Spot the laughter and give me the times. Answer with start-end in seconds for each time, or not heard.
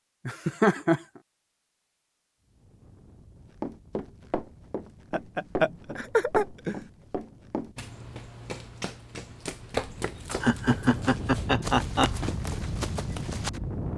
0.2-1.0, 5.1-6.8, 10.4-12.2.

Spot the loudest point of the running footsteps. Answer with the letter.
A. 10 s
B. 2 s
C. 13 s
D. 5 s
A.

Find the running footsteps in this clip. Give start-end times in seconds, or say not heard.
3.6-13.6.